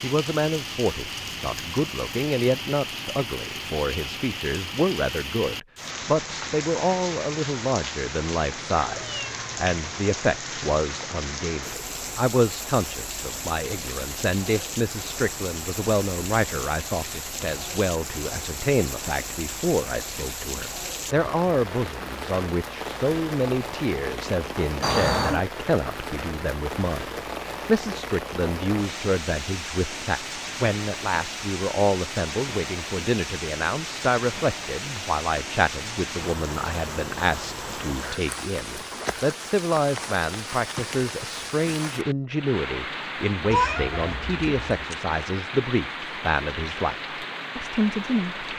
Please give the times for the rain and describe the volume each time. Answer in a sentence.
The rain can be heard from 0.0 to 48.5 s, at a steady volume.